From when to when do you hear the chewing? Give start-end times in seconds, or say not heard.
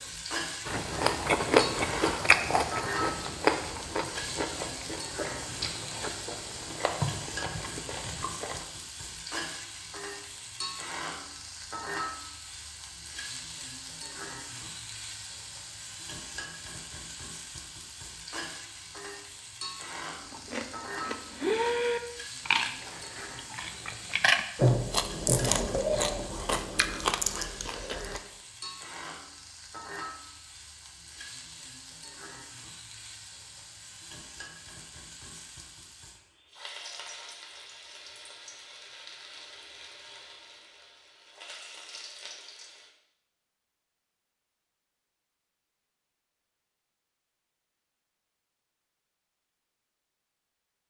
0.7-8.7, 20.3-28.2.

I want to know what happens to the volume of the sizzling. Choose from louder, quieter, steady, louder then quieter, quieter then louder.
quieter.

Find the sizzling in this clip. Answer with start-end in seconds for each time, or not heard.
0.0-42.9.